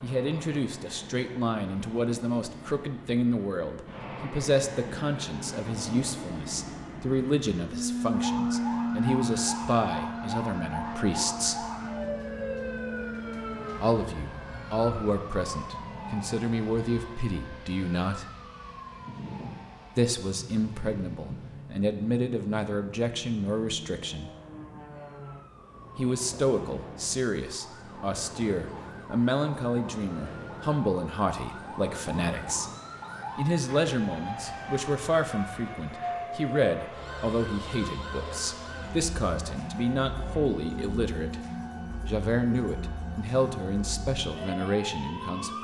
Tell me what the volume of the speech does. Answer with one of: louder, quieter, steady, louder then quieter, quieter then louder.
steady.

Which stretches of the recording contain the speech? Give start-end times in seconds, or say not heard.
0.0-11.7, 13.8-18.3, 19.9-24.3, 25.9-32.7, 33.4-41.4, 42.0-45.5.